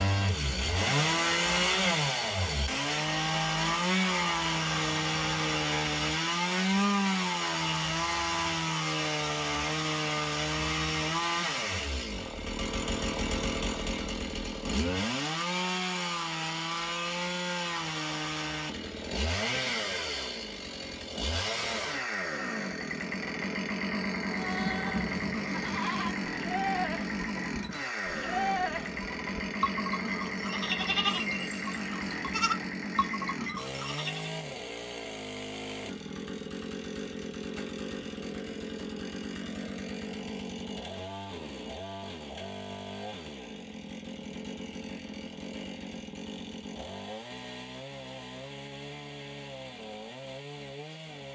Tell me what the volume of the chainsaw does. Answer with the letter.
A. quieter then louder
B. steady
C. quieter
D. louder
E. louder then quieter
C.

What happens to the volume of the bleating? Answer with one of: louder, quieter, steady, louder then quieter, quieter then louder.
steady.